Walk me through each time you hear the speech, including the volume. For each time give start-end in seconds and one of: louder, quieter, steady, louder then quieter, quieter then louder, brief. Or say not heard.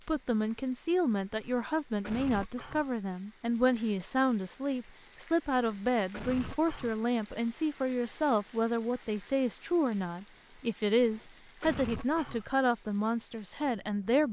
0.1-14.2 steady.